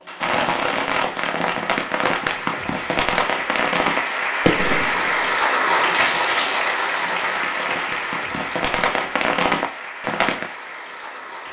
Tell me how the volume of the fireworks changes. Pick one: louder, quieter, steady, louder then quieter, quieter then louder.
quieter then louder.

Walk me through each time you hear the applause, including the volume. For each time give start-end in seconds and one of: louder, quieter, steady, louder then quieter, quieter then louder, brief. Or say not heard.
0.0-11.4 louder then quieter.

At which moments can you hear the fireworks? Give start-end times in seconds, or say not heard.
0.2-10.5.